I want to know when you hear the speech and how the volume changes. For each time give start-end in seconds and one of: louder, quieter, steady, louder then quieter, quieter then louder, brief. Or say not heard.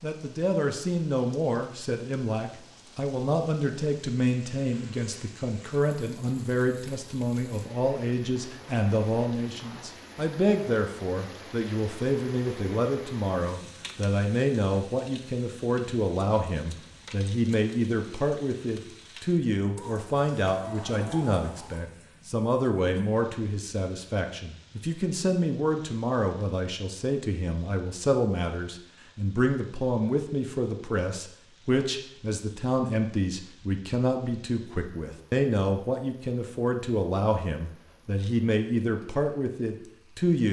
0.0-40.4 steady.